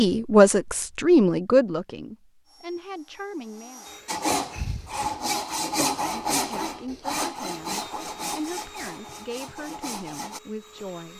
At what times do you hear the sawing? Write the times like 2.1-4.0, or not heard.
4.0-10.4.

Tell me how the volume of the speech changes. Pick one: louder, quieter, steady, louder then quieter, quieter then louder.
quieter.